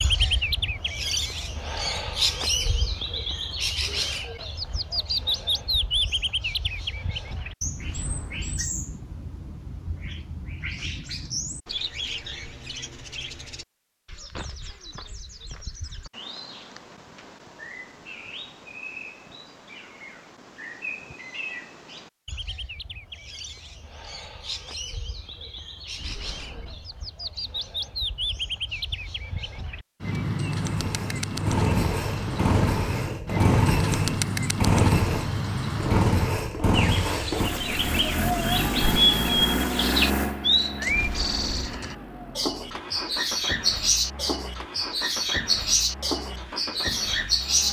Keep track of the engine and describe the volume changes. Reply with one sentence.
The loudness of the engine goes down.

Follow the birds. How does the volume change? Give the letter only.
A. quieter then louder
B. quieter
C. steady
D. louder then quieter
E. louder
A.